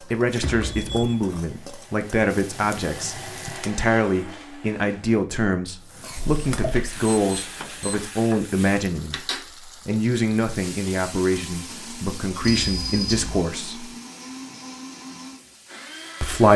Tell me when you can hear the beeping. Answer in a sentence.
You can hear the beeping from 0.4 to 1.2 s, from 6.2 to 8.0 s and from 12.4 to 13.4 s.